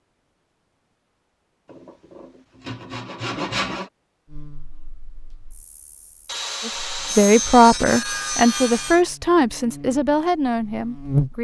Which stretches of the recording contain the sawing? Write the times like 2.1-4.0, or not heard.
1.7-3.9, 6.2-9.1.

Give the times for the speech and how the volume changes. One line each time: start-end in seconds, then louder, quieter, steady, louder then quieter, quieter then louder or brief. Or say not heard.
6.7-11.3 quieter.